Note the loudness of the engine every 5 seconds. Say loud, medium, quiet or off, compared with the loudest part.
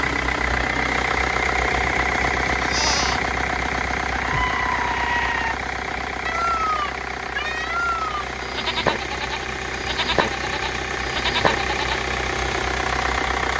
loud, medium, loud.